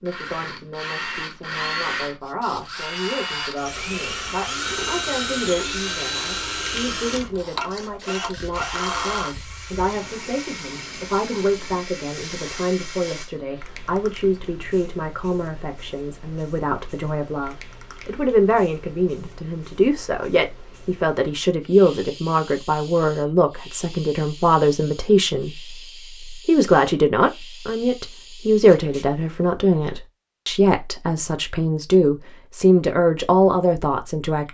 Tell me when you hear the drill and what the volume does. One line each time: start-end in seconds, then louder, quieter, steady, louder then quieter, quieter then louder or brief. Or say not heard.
0.0-13.2 quieter.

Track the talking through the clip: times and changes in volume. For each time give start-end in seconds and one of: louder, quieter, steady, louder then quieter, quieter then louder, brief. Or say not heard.
0.0-34.4 louder.